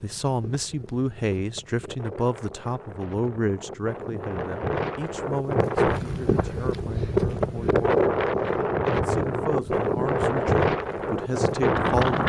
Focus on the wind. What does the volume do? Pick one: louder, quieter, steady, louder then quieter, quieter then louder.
louder.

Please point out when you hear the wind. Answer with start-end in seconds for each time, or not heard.
0.0-12.2.